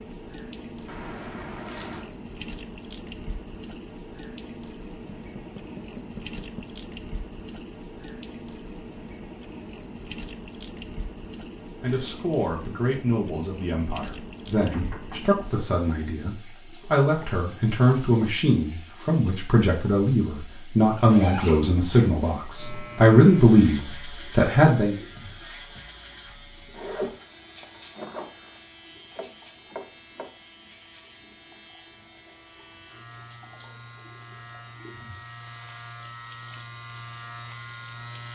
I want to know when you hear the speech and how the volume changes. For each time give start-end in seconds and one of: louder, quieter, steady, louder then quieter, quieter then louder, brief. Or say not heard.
11.8-24.9 louder.